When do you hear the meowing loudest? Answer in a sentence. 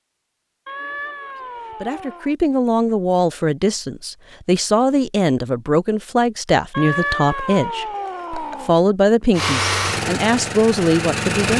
The loudest moment of the meowing is at 7 seconds.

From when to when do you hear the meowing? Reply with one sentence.
You can hear the meowing from 0.7 to 2.4 s and from 6.7 to 8.8 s.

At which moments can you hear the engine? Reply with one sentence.
The engine can be heard from 9.3 to 11.5 s.